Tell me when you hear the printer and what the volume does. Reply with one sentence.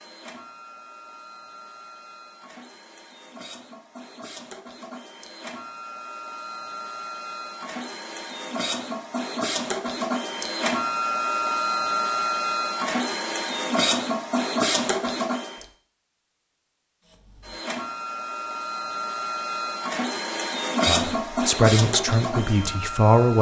You can hear the printer from 0.0 to 15.7 s, getting louder; and from 17.1 to 23.3 s, getting louder then quieter.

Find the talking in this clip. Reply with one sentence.
You can hear the talking from 20.9 to 23.3 s.